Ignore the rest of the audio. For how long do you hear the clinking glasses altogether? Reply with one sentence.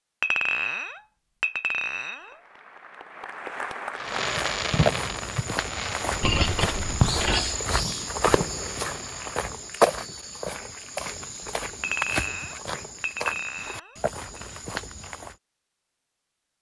You can hear the clinking glasses for 6 seconds altogether.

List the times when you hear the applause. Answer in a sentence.
The applause can be heard from 2.1 to 4.6 s.